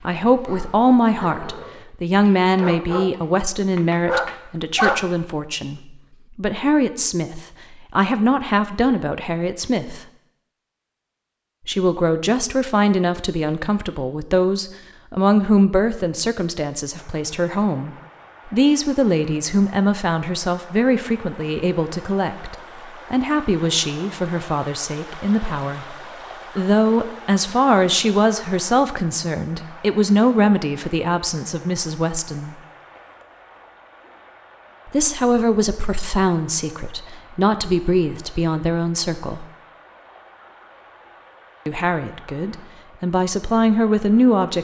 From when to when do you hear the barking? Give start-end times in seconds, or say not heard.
0.0-5.0.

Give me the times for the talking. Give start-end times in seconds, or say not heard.
0.0-10.0, 11.7-32.5, 34.9-39.5, 41.6-44.6.